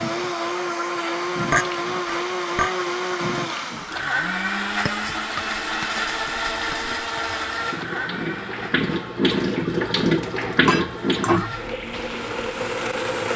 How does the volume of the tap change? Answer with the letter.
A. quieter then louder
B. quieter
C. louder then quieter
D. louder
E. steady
A.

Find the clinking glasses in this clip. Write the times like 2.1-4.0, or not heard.
1.5-2.8, 4.8-7.2, 10.7-11.6.